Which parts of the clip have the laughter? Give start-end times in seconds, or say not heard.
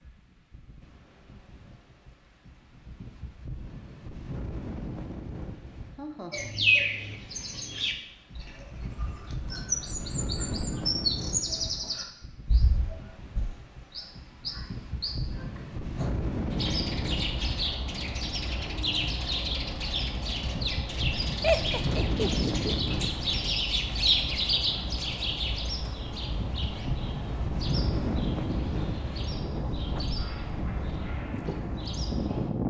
6.0-6.5, 21.4-22.7.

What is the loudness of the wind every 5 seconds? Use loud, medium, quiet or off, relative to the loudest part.
medium, medium, medium, loud, loud, loud, loud.